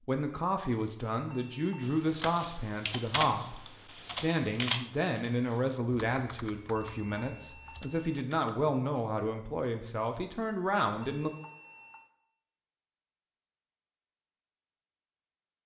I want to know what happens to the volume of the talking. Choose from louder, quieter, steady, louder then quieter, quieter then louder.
steady.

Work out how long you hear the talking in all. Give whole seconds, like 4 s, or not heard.
11 s.